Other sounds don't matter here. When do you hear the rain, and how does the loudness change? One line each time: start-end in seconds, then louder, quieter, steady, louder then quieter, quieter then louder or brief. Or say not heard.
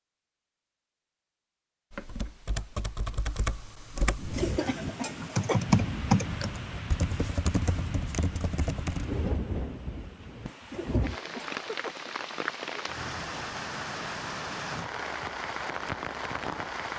4.1-16.9 steady.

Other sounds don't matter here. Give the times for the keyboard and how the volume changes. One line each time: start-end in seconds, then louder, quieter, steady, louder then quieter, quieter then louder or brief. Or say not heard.
1.9-9.1 louder then quieter.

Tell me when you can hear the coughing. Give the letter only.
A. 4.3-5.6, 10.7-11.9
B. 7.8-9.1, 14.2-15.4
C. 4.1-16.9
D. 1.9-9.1
A.